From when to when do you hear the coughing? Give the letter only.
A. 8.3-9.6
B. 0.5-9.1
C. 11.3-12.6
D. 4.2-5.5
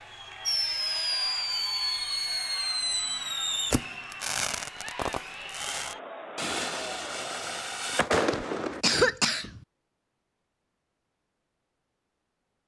A.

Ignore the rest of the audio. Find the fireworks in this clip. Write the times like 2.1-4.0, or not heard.
0.5-9.1.